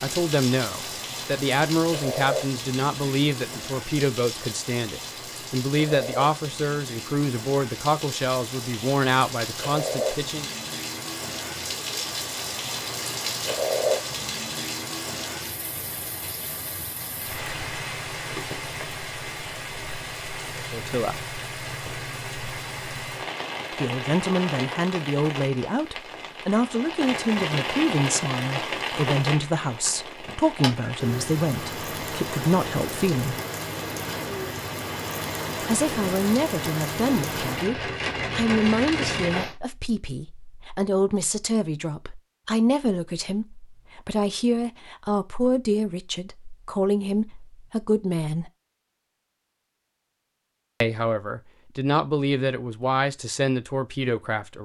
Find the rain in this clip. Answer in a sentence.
The rain can be heard from 0.0 to 39.5 s.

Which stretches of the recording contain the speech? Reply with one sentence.
The speech can be heard from 0.0 to 10.5 s, from 20.6 to 21.2 s, from 23.8 to 33.4 s, from 35.6 to 48.5 s and from 50.8 to 54.6 s.